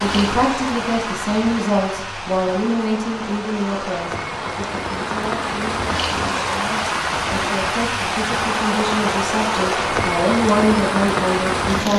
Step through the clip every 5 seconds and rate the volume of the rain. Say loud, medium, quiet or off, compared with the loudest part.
medium, loud, loud.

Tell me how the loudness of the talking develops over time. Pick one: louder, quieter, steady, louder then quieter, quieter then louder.
quieter then louder.